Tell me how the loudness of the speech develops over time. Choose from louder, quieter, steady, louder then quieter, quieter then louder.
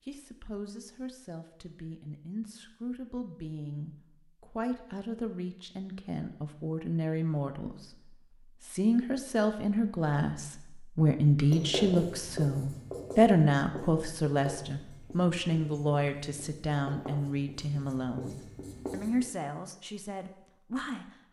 louder then quieter.